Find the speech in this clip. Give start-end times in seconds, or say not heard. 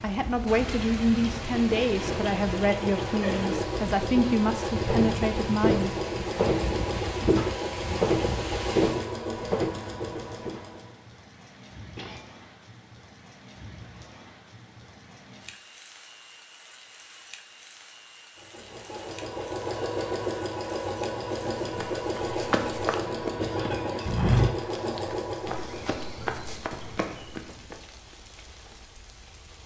0.0-5.9.